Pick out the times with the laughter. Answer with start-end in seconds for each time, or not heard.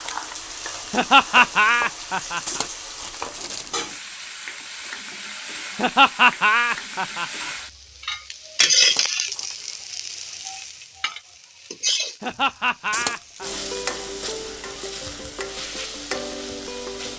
0.9-2.6, 5.8-7.5, 12.2-13.5.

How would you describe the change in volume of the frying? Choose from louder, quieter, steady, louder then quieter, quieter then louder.
louder then quieter.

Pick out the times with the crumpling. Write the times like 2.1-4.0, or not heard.
2.5-3.9, 8.8-9.8, 12.9-13.6.